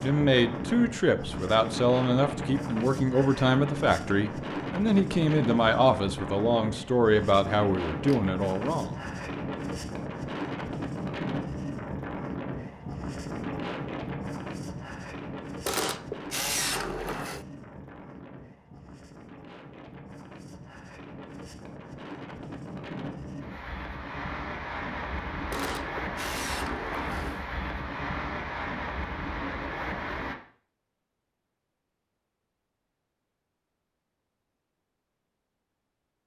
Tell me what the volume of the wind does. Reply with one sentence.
The loudness of the wind goes down, then up.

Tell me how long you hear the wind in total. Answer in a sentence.
You can hear the wind for 30 seconds altogether.